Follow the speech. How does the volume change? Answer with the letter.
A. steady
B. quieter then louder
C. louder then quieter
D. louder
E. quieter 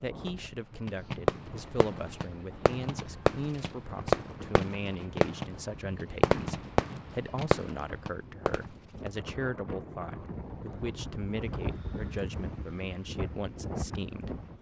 A.